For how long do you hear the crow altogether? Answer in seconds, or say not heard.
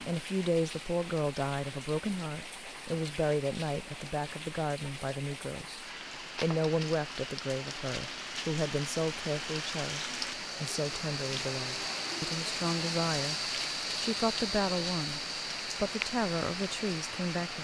not heard.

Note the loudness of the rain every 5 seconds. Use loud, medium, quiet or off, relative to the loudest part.
medium, medium, loud, loud.